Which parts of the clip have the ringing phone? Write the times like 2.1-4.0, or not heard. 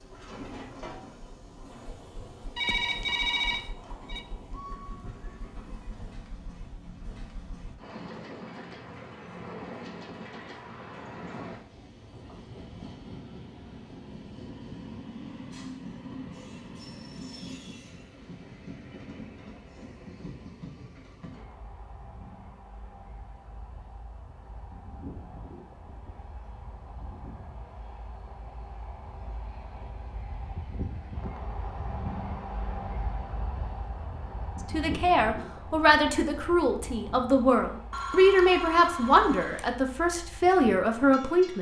2.5-4.2, 37.9-39.7.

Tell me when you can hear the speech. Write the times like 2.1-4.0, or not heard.
34.7-41.5.